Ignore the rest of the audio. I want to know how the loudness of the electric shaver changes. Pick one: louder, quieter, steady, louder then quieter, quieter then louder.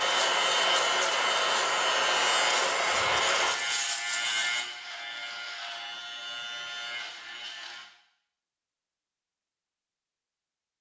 quieter.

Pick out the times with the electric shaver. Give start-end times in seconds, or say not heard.
0.0-7.9.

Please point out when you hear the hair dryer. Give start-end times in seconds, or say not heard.
0.0-3.5.